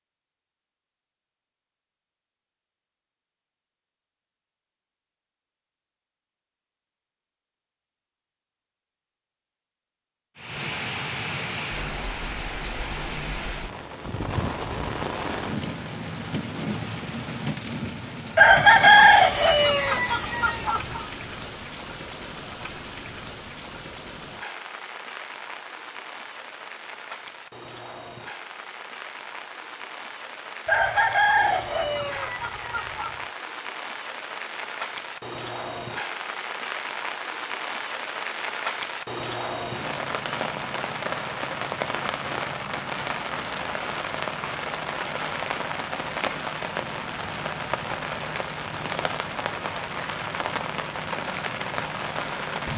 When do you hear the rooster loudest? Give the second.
19 s.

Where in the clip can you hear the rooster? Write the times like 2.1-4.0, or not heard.
18.4-21.1, 30.6-33.1.